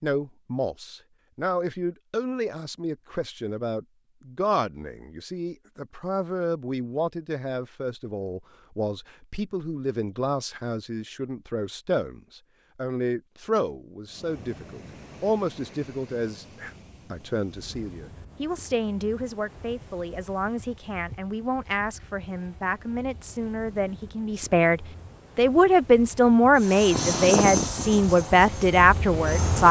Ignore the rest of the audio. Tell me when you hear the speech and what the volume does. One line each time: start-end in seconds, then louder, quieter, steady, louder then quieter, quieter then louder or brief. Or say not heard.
0.0-29.6 louder.